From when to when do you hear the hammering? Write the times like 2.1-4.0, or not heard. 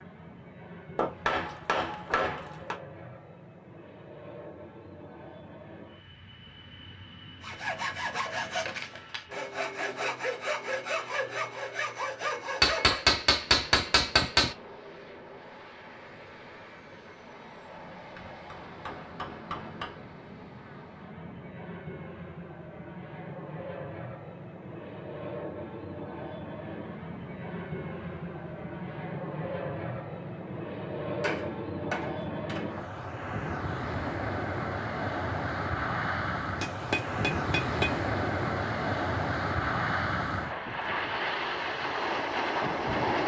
0.9-2.8, 12.6-14.6, 18.1-20.0, 31.2-32.7, 36.6-38.0.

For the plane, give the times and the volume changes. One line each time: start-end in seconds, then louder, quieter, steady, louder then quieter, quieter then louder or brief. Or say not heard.
0.0-43.2 louder.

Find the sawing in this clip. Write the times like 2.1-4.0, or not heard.
7.4-13.1.